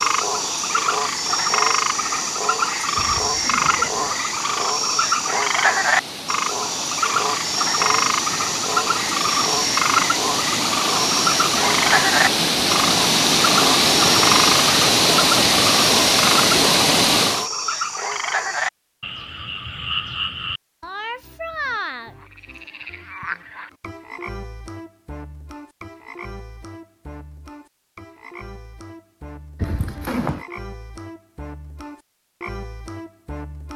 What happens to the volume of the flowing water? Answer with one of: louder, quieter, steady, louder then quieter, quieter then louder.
louder.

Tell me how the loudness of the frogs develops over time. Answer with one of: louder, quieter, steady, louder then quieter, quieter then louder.
quieter.